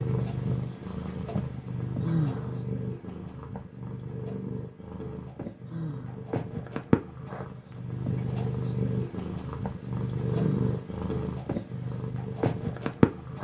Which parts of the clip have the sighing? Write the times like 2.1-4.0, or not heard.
2.0-2.6, 5.7-6.2, 10.2-10.7.